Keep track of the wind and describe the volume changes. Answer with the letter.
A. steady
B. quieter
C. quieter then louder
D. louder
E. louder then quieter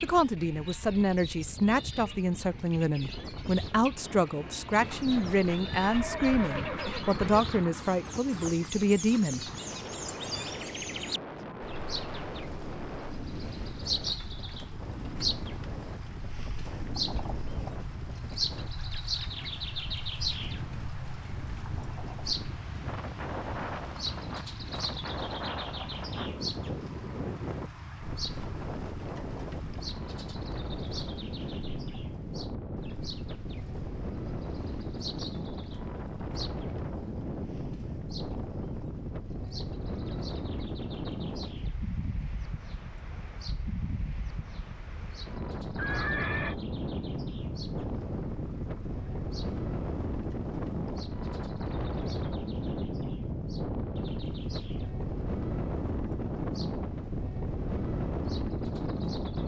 D.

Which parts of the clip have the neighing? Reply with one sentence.
You can hear the neighing from 4.8 to 7.5 s and from 45.8 to 46.5 s.